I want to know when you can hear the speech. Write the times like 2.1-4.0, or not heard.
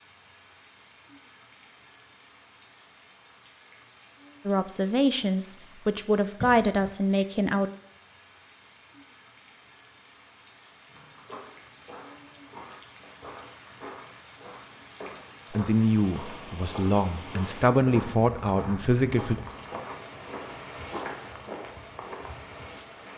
4.5-7.7, 15.5-19.4.